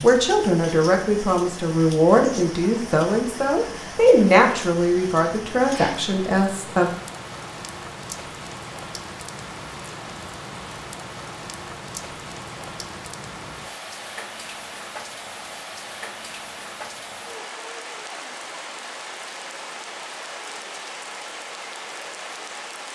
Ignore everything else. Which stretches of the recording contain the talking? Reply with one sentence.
The talking can be heard from 0.0 to 7.0 s.